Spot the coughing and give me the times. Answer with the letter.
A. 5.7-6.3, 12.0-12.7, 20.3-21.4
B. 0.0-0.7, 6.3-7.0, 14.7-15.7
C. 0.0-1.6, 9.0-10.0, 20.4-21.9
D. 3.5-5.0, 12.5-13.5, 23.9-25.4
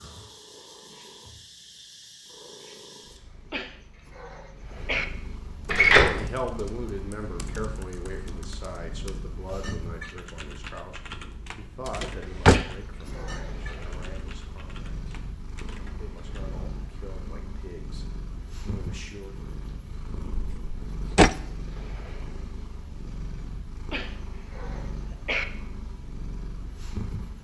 D.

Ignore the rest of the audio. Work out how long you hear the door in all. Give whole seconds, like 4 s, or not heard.
2 s.